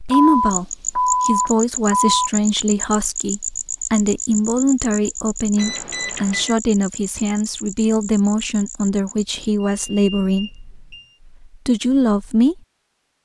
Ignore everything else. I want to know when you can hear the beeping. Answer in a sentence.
You can hear the beeping from 0.1 to 2.3 s, from 5.5 to 6.5 s and from 9.6 to 11.2 s.